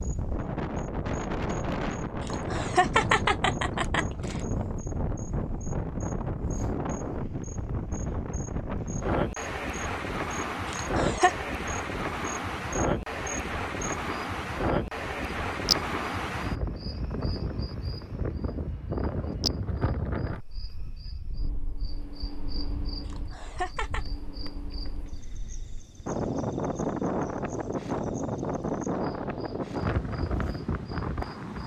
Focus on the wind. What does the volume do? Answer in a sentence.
The loudness of the wind goes down, then up.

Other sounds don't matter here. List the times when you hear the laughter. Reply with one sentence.
You can hear the laughter from 2.2 to 4.4 s, from 10.7 to 11.3 s and from 23.1 to 24.1 s.